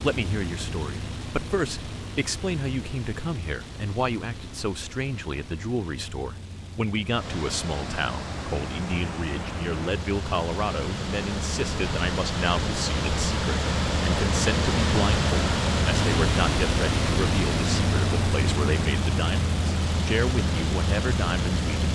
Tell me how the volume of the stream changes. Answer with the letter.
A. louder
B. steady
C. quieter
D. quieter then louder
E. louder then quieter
E.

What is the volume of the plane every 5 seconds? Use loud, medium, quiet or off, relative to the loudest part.
medium, quiet, medium, loud, loud.